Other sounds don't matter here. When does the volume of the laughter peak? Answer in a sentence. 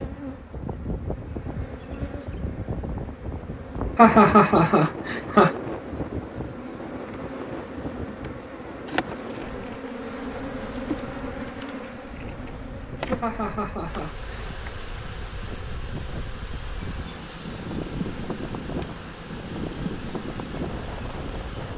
The volume of the laughter peaks at 4 seconds.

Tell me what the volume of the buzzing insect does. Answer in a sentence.
The loudness of the buzzing insect goes up, then down.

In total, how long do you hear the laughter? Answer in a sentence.
You can hear the laughter for 3 seconds altogether.